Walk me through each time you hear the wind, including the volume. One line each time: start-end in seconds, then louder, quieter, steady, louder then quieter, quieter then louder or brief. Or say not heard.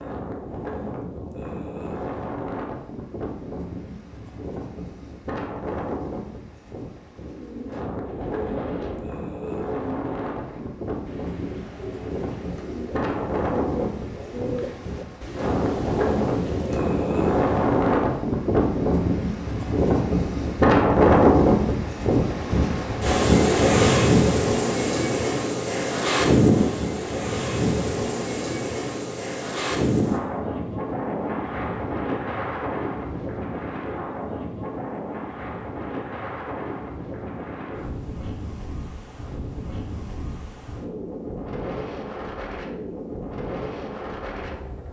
0.0-44.8 louder then quieter.